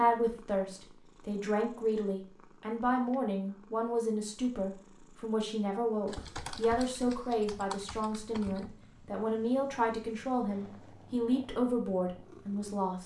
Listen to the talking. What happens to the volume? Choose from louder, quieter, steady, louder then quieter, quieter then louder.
steady.